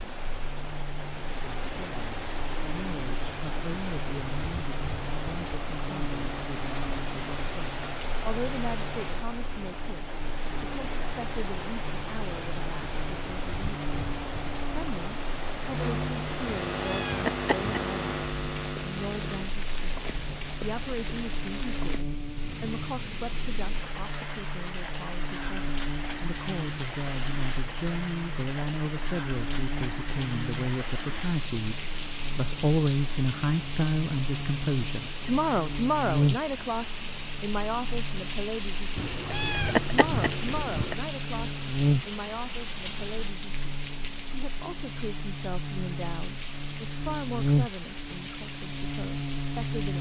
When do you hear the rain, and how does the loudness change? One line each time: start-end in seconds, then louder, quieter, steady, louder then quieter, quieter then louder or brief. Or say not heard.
0.0-49.9 steady.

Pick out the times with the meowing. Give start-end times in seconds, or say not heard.
16.7-17.9, 39.0-41.0.